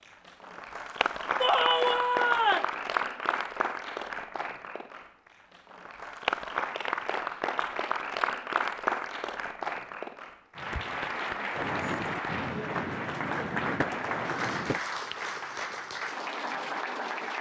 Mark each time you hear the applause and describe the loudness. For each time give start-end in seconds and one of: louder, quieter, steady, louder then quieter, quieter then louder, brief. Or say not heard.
0.1-17.3 steady.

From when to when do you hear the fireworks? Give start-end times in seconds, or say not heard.
11.5-14.8.